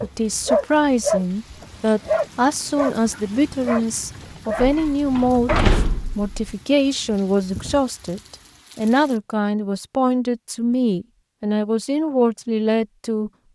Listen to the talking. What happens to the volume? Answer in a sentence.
The loudness of the talking stays about the same.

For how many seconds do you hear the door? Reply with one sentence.
The door can be heard for 2 seconds in total.